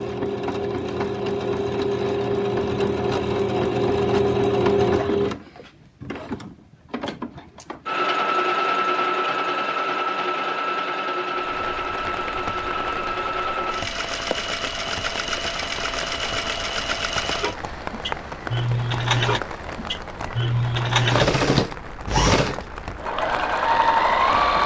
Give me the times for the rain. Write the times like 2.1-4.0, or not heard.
11.3-24.6.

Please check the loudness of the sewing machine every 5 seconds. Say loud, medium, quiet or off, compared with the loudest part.
loud, loud, medium, medium, loud.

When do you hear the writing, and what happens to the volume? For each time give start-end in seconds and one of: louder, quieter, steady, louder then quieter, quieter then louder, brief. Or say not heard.
not heard.